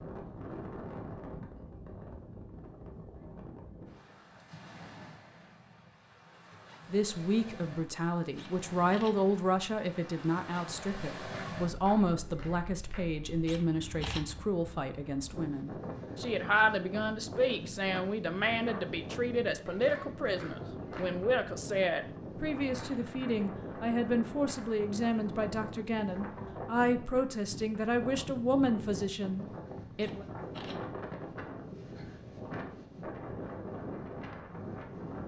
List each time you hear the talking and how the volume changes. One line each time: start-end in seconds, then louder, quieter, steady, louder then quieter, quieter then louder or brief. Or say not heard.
6.8-30.2 steady.